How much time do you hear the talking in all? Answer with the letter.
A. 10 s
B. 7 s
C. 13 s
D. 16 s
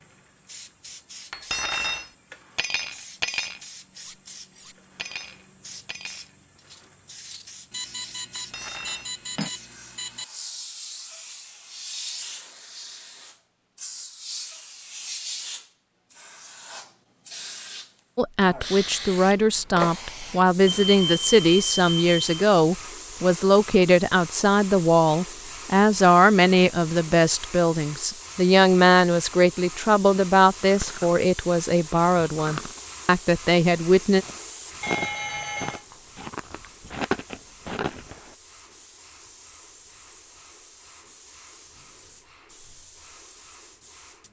D.